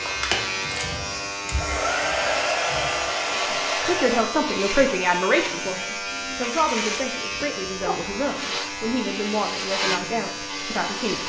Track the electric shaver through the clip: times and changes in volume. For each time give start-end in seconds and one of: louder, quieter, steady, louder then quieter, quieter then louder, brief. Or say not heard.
0.0-11.2 steady.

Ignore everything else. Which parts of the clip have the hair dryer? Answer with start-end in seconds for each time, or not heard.
0.0-4.2.